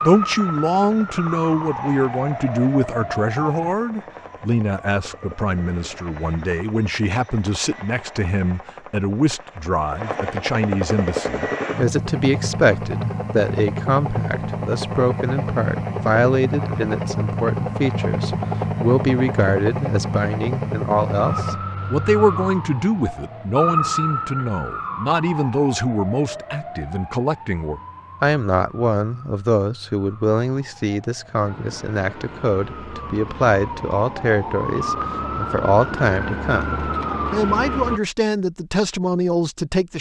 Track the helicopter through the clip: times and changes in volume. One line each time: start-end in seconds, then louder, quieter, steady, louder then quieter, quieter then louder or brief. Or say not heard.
0.0-21.6 louder.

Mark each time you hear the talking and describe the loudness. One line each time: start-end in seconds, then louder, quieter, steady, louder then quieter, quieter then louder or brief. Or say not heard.
0.0-39.9 steady.